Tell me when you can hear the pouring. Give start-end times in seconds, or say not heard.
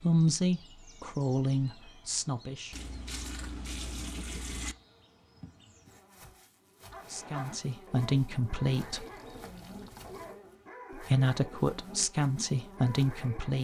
2.7-4.8, 8.7-10.4.